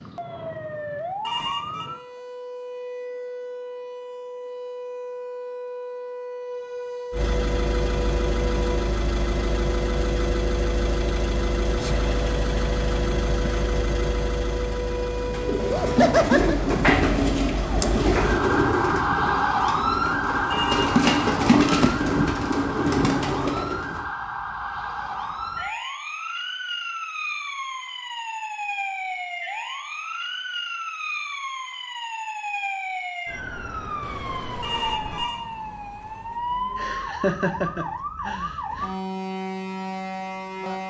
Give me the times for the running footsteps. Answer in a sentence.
The running footsteps can't be heard in this clip.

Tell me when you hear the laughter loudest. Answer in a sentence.
The loudest moment of the laughter is at 16 seconds.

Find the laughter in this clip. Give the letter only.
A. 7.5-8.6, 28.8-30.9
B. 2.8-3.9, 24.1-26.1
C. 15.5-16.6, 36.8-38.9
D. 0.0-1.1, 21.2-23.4
C.